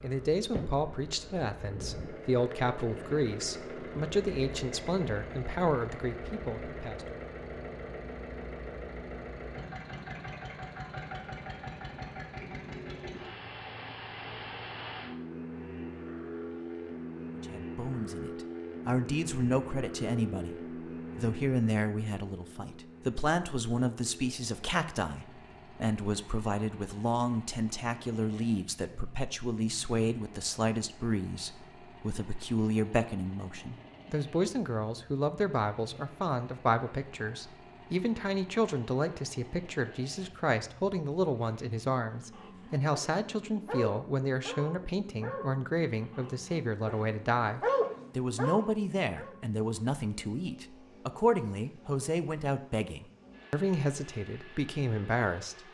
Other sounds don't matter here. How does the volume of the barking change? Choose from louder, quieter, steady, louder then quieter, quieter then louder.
quieter then louder.